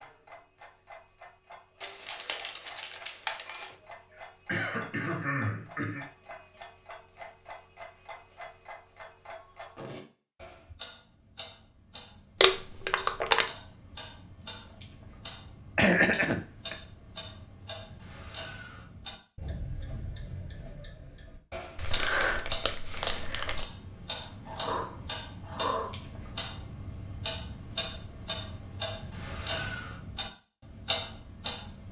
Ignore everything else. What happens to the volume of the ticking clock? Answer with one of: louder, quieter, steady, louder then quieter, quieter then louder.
louder.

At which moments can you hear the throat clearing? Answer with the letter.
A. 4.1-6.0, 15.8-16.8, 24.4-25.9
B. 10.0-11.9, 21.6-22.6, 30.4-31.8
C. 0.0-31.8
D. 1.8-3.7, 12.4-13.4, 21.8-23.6
A.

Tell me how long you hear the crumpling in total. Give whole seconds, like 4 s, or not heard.
5 s.